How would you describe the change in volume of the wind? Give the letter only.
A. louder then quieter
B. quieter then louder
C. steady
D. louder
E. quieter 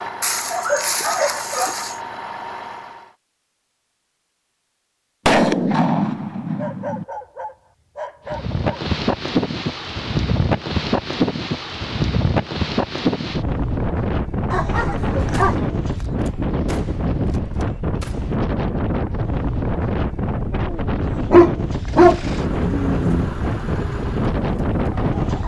C.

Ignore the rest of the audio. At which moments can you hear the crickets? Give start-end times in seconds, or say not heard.
not heard.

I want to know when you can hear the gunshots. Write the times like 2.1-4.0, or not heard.
5.2-7.0, 15.3-18.4.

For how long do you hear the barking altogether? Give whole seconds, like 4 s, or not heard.
7 s.